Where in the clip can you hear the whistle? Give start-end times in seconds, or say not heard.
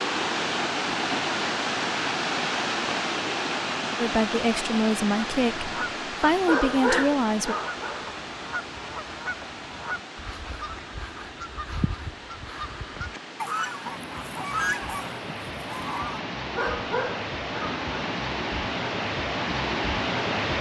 not heard.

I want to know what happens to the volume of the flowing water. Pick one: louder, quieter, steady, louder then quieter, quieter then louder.
quieter then louder.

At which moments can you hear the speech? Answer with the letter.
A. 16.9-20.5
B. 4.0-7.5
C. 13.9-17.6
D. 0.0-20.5
B.